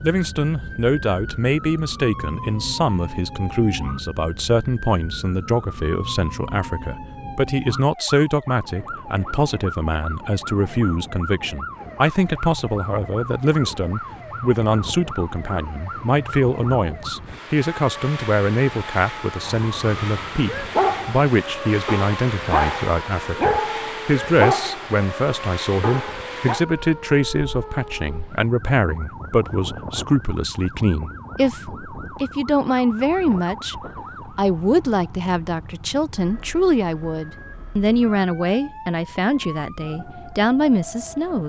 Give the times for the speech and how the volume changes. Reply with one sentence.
The speech can be heard from 0.0 to 41.4 s, at a steady volume.